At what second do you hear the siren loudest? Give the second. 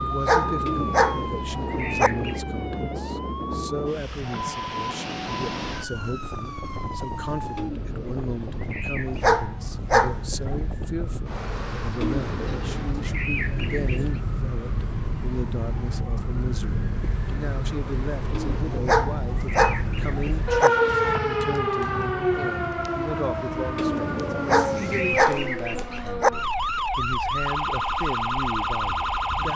21 s.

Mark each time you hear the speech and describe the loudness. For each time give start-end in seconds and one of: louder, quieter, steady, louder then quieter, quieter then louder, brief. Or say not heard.
0.0-29.5 steady.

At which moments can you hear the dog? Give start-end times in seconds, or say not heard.
0.1-2.1, 9.1-10.6, 18.7-20.7, 24.4-26.3.